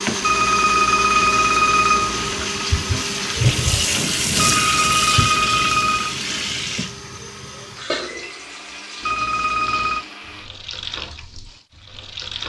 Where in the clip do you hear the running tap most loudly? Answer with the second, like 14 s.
4 s.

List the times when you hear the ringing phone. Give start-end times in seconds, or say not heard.
0.2-2.4, 4.3-6.2, 9.0-10.1.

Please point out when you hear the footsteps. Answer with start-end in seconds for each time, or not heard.
not heard.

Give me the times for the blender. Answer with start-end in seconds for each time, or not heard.
0.0-10.5.